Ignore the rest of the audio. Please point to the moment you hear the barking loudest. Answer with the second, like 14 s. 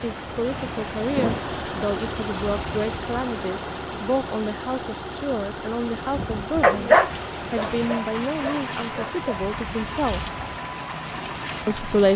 7 s.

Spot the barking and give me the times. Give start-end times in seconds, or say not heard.
6.6-9.4.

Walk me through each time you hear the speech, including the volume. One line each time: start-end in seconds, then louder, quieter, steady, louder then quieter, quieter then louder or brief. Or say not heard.
0.0-10.2 steady
11.7-12.1 brief.